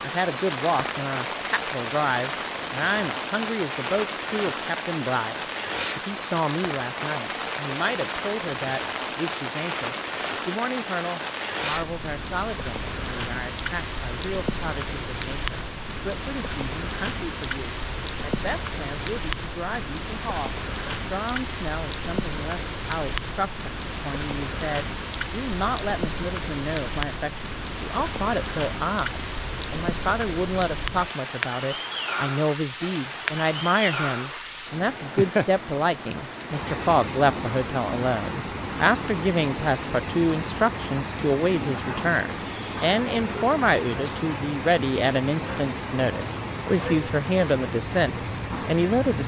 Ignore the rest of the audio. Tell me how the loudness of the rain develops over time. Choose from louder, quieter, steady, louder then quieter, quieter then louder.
steady.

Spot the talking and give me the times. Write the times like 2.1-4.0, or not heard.
0.0-49.2.